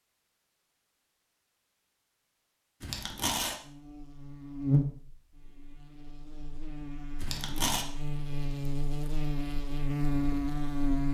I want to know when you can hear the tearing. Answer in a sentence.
You can hear the tearing from 2.8 to 3.5 s and from 7.2 to 7.8 s.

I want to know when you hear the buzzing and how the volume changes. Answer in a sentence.
You can hear the buzzing from 3.6 to 11.0 s, getting quieter then louder.